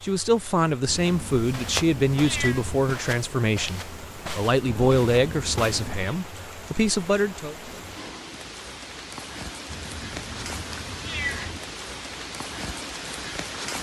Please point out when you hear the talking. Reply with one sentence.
The talking can be heard from 0.0 to 7.5 s.